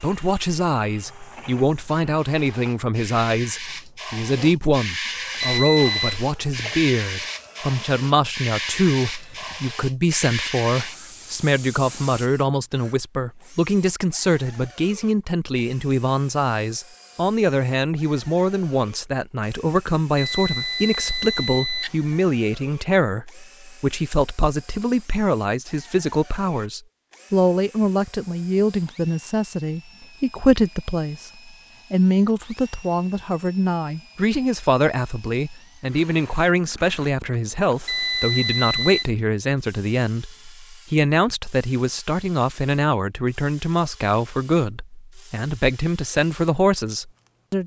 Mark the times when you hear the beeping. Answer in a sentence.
You can hear the beeping from 5.4 to 6.2 s, from 20.1 to 21.9 s and from 37.9 to 39.0 s.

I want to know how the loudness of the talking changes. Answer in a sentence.
The loudness of the talking stays about the same.